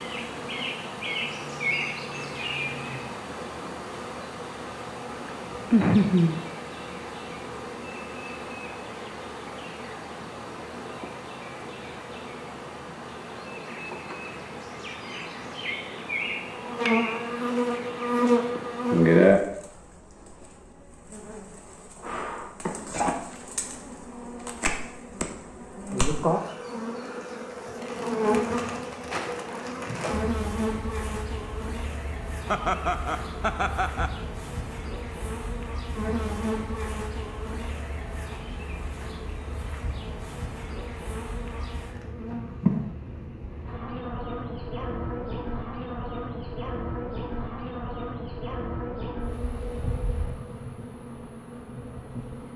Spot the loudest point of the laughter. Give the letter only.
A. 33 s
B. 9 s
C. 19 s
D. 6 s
D.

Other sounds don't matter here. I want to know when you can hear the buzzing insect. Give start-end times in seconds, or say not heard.
0.0-52.5.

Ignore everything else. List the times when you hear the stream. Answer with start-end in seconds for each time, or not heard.
not heard.